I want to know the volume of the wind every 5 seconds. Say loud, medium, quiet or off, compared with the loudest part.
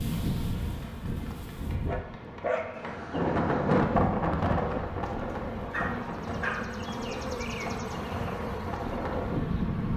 loud, medium.